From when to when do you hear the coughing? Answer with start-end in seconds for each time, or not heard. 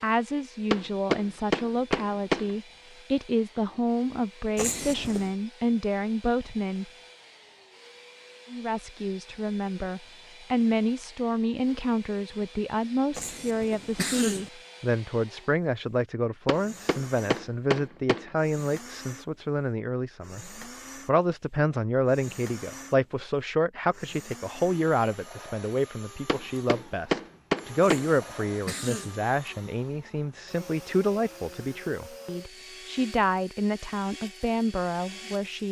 4.5-5.3, 13.2-14.5, 27.9-29.2.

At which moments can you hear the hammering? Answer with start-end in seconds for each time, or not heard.
0.7-2.5, 16.4-18.3, 26.2-28.1.